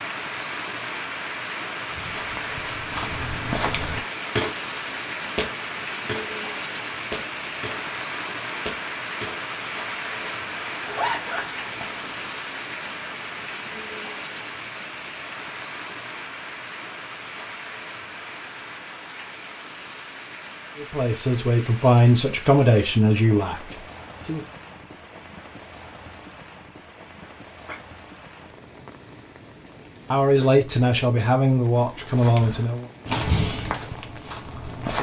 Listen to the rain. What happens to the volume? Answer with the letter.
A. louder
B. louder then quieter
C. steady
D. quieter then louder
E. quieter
E.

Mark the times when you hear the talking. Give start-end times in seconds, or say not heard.
20.8-24.4, 30.1-32.9.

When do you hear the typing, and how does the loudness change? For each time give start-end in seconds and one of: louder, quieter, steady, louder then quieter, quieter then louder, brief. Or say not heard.
not heard.